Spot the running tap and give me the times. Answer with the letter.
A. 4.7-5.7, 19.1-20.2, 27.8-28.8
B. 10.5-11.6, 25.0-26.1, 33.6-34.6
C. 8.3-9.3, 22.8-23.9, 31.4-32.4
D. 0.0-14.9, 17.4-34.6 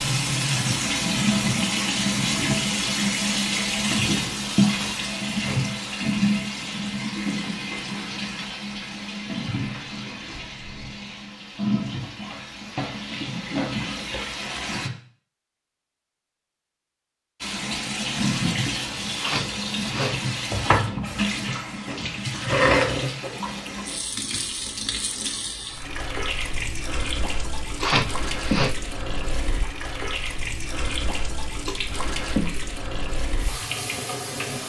D.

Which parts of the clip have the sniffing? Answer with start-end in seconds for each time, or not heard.
4.7-5.7, 19.1-20.2, 27.8-28.8.